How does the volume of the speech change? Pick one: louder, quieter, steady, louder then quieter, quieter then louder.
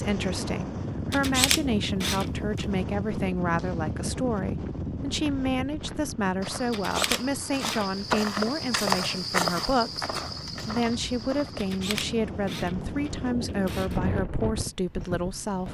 steady.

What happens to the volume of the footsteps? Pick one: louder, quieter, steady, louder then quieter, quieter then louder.
louder then quieter.